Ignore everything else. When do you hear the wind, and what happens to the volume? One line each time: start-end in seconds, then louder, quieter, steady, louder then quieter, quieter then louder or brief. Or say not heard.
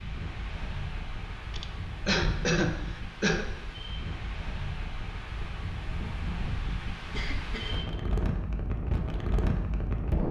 0.0-10.2 louder.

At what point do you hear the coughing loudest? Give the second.
3 s.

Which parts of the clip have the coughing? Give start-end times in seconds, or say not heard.
1.5-3.5, 7.1-7.8.